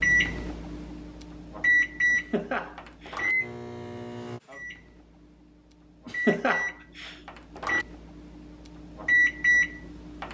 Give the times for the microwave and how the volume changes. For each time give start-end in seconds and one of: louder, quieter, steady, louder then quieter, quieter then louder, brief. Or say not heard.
0.0-10.2 quieter then louder.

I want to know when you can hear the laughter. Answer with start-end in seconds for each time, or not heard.
2.1-3.2, 6.0-7.2.